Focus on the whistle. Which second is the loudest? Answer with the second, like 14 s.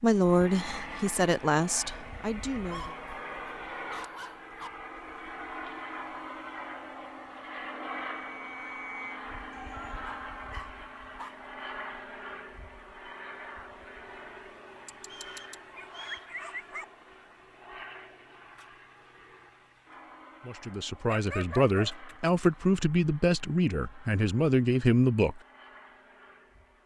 9 s.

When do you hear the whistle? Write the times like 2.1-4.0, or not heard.
8.1-9.2, 15.1-16.3.